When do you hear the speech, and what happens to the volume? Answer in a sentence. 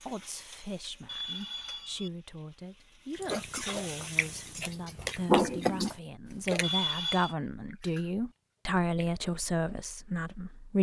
You can hear the speech from 0.0 to 10.7 s, getting louder.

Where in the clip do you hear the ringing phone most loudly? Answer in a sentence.
The volume of the ringing phone peaks at 7 seconds.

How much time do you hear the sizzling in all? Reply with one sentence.
You can hear the sizzling for 5 seconds altogether.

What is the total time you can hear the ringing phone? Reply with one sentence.
The ringing phone can be heard for 2 seconds in total.